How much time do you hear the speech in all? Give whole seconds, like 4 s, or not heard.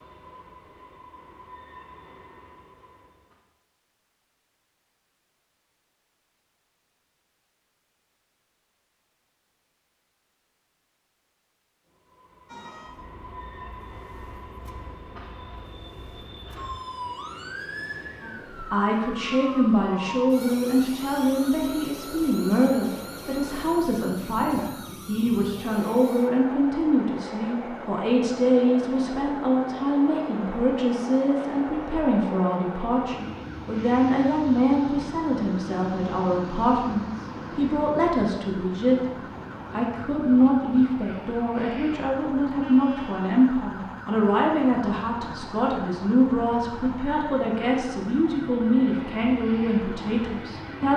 32 s.